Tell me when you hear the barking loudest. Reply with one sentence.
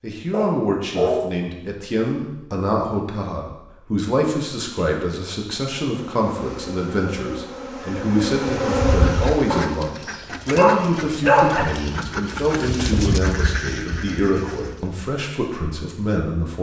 The loudest moment of the barking is at 11 seconds.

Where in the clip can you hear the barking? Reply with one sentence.
You can hear the barking from 0.3 to 1.3 s and from 9.5 to 11.7 s.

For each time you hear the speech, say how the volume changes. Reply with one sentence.
You can hear the speech from 0.0 to 16.5 s, at a steady volume.